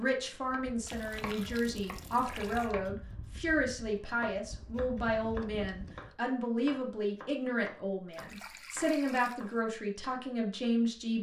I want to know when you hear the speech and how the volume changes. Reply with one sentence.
You can hear the speech from 0.0 to 11.1 s, at a steady volume.